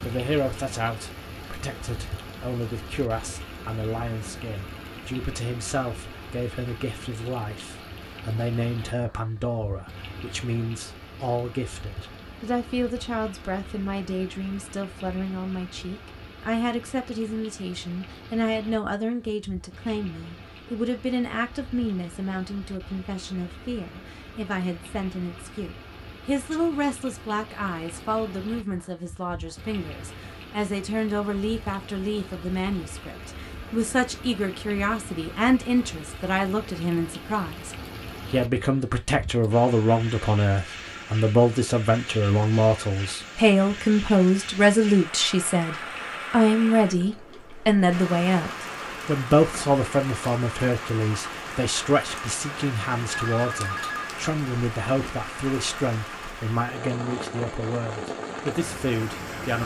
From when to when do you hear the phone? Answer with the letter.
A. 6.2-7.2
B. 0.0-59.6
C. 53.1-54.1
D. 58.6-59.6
C.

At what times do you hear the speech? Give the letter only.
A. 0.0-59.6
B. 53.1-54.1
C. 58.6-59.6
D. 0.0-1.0
A.